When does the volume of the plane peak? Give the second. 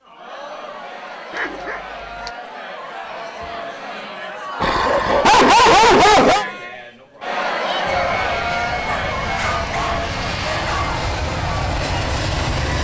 12 s.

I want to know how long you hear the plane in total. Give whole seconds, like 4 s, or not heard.
5 s.